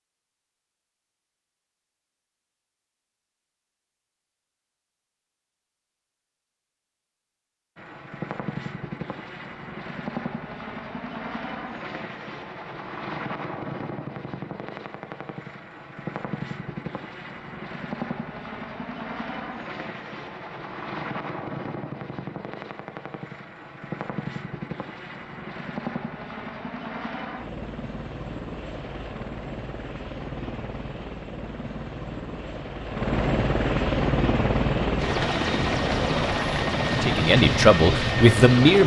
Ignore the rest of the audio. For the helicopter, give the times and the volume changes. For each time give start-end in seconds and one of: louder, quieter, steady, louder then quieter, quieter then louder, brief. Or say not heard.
7.8-38.8 louder.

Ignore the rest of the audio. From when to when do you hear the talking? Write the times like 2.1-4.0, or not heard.
37.0-38.8.